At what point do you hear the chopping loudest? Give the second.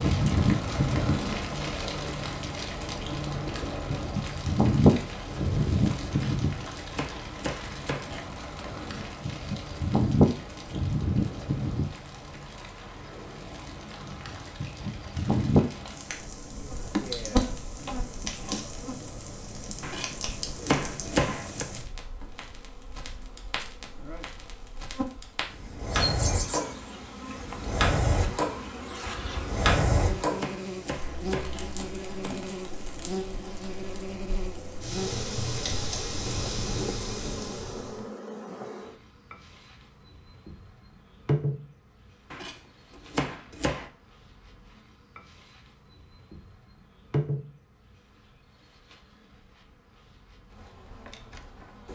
21 s.